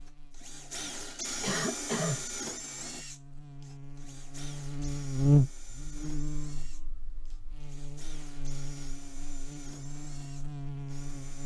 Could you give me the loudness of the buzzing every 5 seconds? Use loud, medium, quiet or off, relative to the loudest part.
quiet, loud, medium.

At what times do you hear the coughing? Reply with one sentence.
You can hear the coughing from 1.4 to 2.2 s.